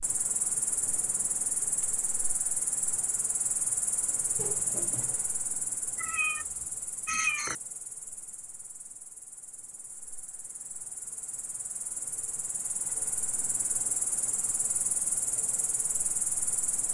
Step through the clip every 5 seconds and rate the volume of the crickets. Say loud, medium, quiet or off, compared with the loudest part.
loud, medium, loud, loud.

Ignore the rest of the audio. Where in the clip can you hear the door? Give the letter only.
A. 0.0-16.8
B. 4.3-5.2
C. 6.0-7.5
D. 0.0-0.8
B.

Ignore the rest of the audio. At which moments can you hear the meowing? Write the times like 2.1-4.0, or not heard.
6.0-7.5.